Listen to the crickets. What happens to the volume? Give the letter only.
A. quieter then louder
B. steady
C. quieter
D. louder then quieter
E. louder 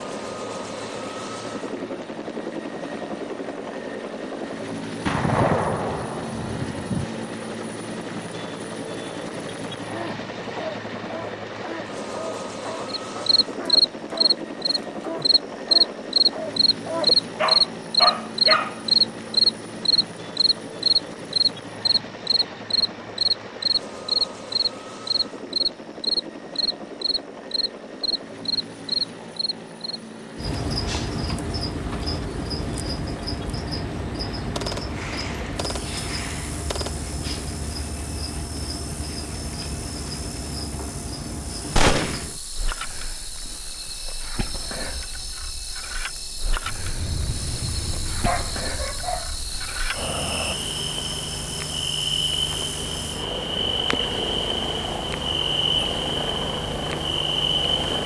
A.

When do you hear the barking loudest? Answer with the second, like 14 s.
18 s.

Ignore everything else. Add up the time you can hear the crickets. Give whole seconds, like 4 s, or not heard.
45 s.